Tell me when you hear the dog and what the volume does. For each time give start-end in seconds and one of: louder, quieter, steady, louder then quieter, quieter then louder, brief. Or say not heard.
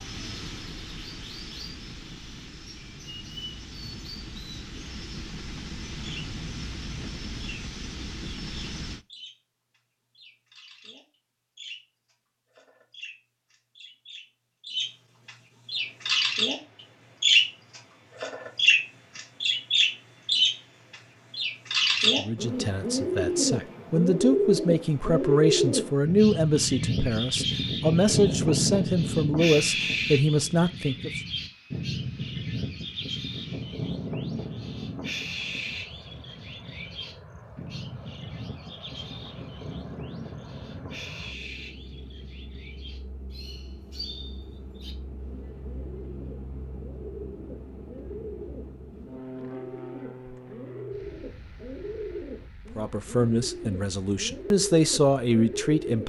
not heard.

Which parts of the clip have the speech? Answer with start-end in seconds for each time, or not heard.
22.0-31.2, 52.8-56.0.